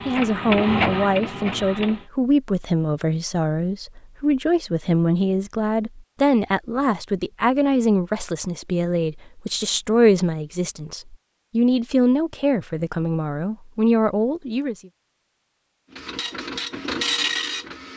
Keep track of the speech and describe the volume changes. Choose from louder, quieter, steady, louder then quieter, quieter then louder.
steady.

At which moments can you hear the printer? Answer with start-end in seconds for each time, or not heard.
0.0-2.0, 15.9-17.9.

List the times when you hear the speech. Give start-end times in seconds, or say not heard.
0.1-14.8.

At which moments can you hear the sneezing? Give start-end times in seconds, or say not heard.
not heard.